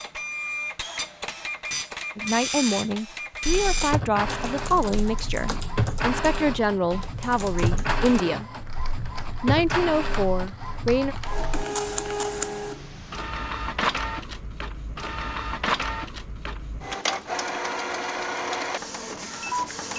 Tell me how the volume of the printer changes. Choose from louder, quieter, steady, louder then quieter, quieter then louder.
steady.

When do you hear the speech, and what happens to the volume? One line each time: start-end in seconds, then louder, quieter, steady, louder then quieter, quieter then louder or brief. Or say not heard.
2.1-8.7 steady
9.4-11.2 brief.